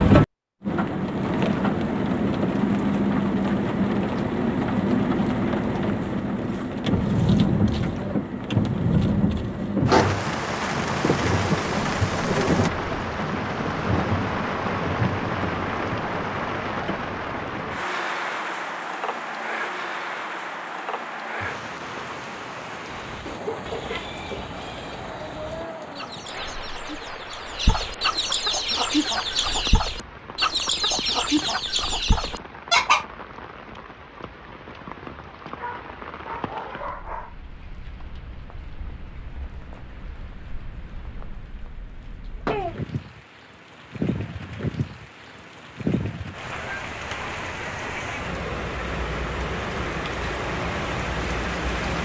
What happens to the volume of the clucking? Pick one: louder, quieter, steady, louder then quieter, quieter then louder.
louder.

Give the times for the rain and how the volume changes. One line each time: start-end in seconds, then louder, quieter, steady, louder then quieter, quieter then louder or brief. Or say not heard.
0.0-52.0 quieter then louder.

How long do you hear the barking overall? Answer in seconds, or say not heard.
2 s.